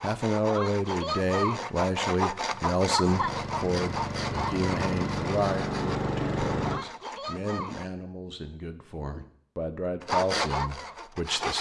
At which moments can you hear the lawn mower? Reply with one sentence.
You can hear the lawn mower from 3.0 to 6.8 s.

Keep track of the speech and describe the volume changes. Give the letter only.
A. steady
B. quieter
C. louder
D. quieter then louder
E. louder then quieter
D.